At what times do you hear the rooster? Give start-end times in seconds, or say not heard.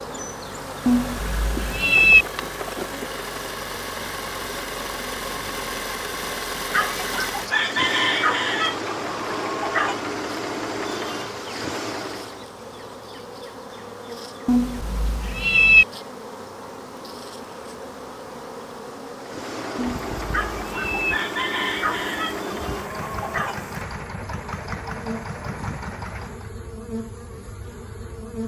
6.7-10.0, 20.3-23.6.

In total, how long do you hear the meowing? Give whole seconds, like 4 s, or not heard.
4 s.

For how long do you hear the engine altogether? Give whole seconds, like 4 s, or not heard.
20 s.